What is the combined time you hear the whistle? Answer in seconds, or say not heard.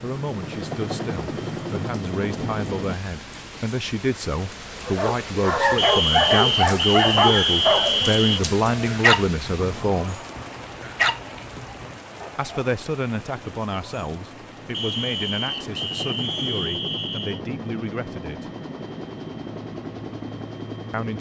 5 s.